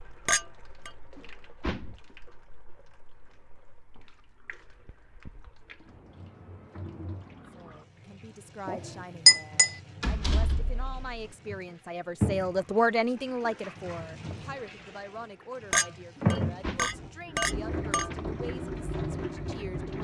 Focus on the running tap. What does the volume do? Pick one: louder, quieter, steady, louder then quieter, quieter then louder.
louder.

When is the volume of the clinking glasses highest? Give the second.
9 s.